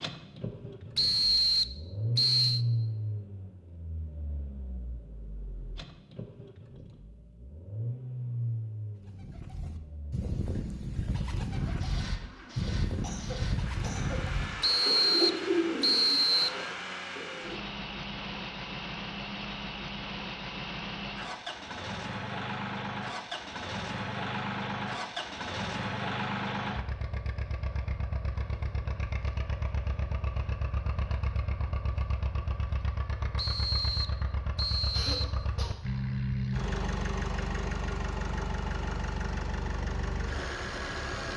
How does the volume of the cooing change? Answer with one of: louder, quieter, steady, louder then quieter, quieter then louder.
louder then quieter.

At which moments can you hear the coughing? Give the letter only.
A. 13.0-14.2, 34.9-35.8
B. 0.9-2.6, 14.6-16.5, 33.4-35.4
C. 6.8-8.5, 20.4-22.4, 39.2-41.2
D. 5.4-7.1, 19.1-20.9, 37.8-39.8
A.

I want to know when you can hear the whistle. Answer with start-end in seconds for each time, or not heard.
0.9-2.6, 14.6-16.5, 33.4-35.4.